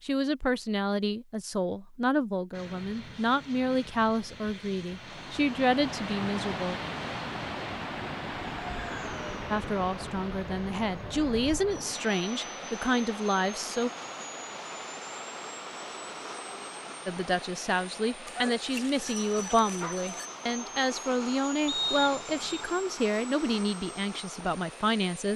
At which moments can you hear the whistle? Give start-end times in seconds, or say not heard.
21.6-22.6.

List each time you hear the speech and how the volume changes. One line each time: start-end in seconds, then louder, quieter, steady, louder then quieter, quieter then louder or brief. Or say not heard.
0.0-6.8 steady
9.5-13.9 louder
17.1-25.3 steady.